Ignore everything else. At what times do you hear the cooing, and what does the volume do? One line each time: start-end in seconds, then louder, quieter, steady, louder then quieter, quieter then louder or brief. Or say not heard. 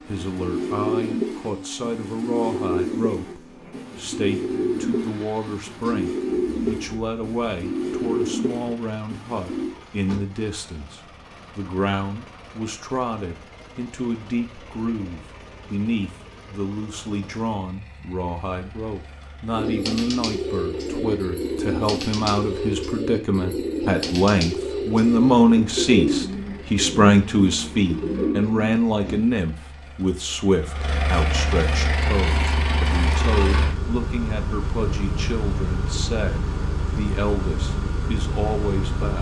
0.1-9.8 steady
19.5-29.2 steady.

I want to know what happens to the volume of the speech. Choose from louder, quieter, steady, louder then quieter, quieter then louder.
louder then quieter.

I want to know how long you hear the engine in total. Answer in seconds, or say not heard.
39 s.